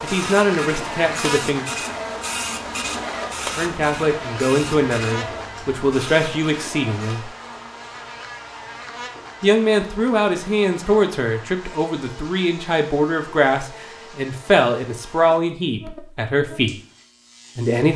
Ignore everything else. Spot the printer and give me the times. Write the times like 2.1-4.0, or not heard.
0.0-7.2.